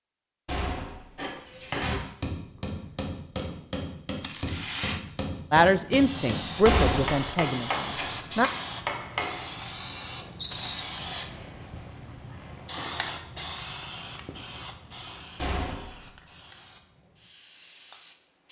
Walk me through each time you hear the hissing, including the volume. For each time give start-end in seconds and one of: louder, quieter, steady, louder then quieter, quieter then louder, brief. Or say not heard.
5.9-18.4 quieter.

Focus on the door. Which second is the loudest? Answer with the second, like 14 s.
7 s.